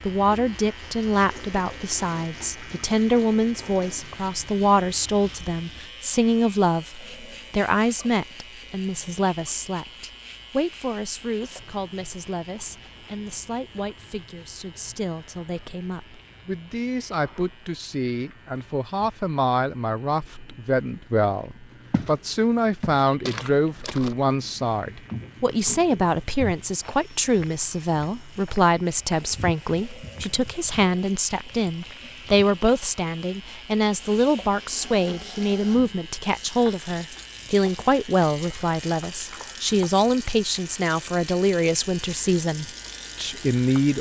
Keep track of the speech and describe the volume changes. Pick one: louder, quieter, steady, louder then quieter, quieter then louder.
quieter then louder.